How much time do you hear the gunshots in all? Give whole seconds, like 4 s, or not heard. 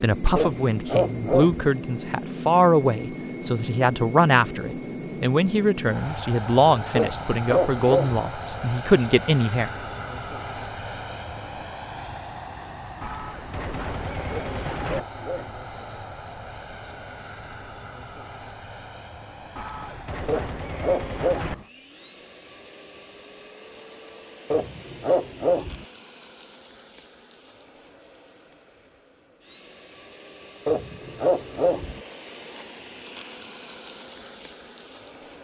4 s.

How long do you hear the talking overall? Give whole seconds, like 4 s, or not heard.
10 s.